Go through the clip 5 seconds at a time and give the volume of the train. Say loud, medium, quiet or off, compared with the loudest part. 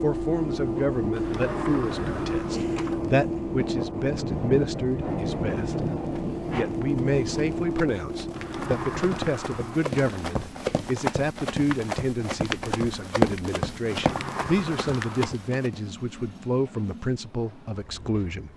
loud, loud, quiet, quiet.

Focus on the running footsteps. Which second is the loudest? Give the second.
13 s.